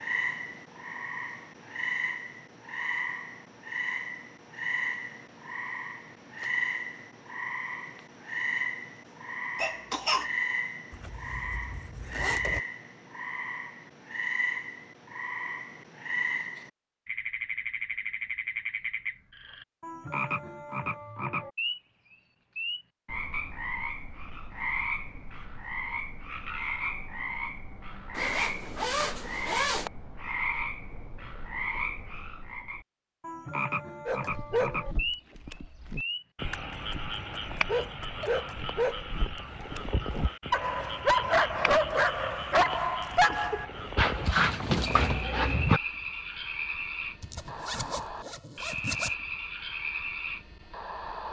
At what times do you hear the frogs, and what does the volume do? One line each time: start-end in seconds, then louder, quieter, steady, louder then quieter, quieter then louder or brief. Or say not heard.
0.0-51.2 steady.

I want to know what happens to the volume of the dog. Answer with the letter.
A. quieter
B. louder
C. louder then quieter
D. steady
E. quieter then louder
B.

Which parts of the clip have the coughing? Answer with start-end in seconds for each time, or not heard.
9.6-10.3.